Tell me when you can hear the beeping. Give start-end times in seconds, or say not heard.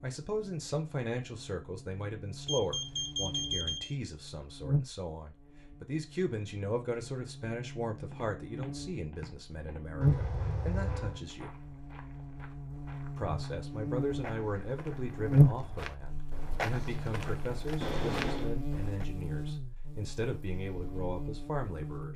2.5-4.0, 10.0-11.2, 17.8-18.5.